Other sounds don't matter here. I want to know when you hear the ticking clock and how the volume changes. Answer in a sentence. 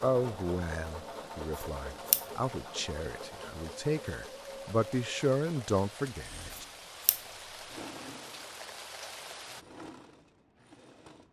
The ticking clock can't be heard in this clip.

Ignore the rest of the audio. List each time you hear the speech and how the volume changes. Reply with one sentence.
You can hear the speech from 0.0 to 6.7 s, getting louder.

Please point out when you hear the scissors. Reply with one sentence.
You can hear the scissors from 1.6 to 2.2 s and from 6.5 to 7.2 s.